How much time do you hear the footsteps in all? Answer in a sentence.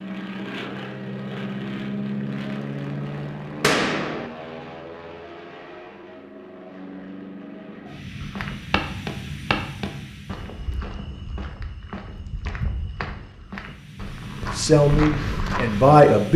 The footsteps can be heard for 8 seconds in total.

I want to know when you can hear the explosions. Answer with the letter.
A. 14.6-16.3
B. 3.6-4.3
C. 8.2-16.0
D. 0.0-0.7
B.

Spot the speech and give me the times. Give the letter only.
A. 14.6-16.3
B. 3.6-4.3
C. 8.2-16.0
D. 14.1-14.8
A.